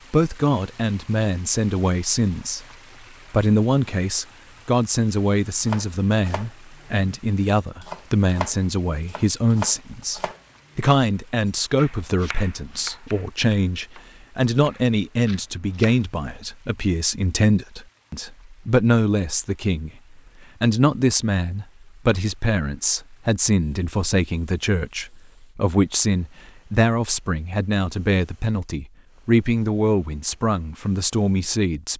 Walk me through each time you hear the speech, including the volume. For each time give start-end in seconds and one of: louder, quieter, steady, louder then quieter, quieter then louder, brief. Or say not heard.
0.1-2.6 brief
3.3-19.9 steady
20.6-31.9 steady.